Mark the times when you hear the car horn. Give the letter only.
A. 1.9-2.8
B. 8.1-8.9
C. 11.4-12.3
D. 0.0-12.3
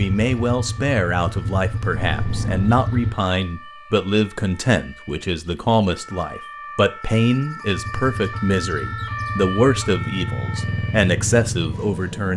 A.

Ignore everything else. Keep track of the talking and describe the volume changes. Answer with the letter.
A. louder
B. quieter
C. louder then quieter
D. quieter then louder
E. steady
E.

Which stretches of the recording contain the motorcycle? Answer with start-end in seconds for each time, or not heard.
0.0-3.2, 7.7-12.3.